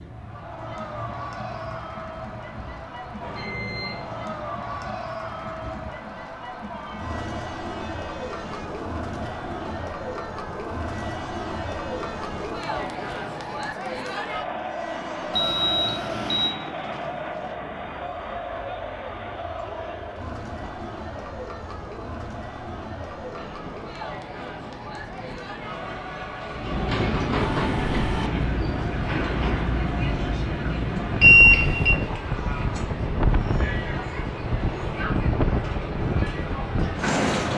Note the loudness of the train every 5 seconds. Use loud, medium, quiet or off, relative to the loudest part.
quiet, quiet, quiet, quiet, quiet, loud, loud, loud.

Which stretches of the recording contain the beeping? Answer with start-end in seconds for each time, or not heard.
3.2-4.3, 15.3-16.6, 31.2-32.0.